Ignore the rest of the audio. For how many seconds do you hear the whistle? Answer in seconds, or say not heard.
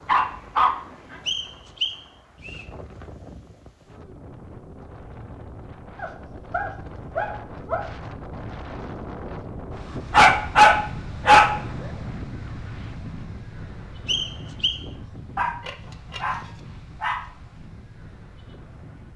2 s.